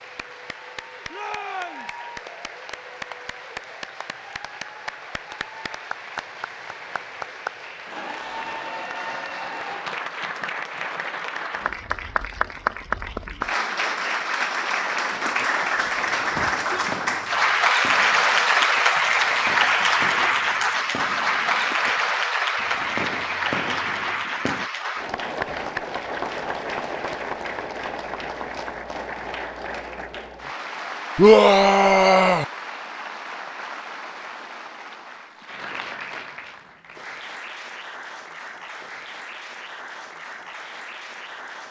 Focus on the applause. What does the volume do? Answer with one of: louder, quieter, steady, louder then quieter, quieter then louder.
louder then quieter.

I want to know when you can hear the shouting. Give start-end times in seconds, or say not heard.
1.1-1.9, 16.3-16.9, 31.1-32.5.